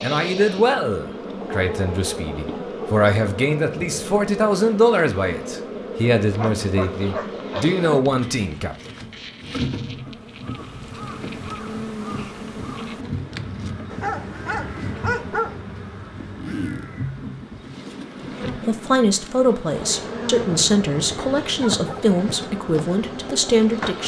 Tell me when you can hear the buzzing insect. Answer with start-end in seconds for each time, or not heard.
0.0-24.0.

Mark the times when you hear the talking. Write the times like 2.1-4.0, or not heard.
0.0-8.8, 18.6-24.0.